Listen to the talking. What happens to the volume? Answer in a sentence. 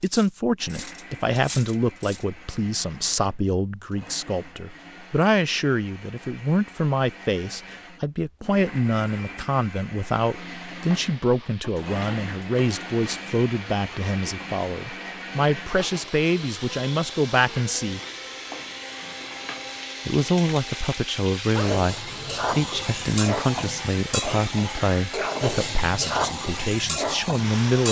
The volume of the talking stays about the same.